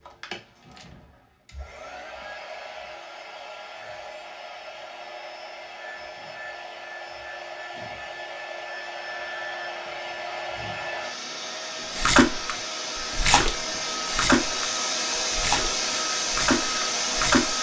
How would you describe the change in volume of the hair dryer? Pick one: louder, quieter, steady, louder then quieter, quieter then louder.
louder.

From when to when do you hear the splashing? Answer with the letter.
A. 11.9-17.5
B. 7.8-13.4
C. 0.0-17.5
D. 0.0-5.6
A.